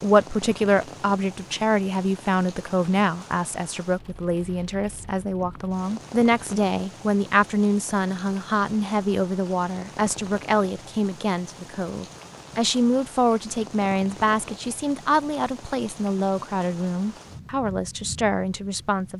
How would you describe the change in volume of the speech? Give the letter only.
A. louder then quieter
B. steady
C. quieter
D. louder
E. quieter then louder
B.